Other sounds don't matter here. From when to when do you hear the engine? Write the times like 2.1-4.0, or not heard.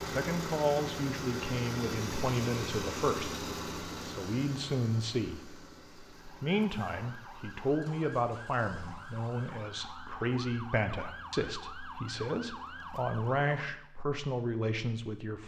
0.0-13.8.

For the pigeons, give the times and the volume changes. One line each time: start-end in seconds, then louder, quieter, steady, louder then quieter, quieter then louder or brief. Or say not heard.
not heard.